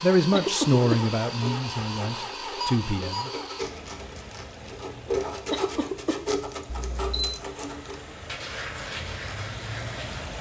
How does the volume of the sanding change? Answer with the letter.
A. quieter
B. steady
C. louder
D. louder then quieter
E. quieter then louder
D.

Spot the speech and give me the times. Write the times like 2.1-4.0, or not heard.
0.0-3.3.